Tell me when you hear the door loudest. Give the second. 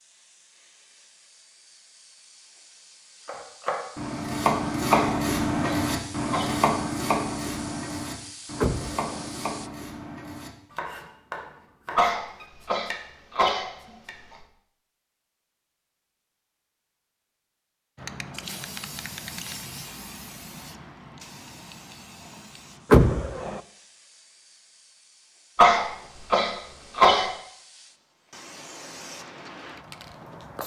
23 s.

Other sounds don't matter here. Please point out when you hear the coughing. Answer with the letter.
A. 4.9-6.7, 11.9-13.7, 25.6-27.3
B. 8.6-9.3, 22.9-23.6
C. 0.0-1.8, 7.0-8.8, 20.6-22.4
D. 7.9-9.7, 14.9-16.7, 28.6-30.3
A.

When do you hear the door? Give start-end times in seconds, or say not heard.
8.6-9.3, 22.9-23.6.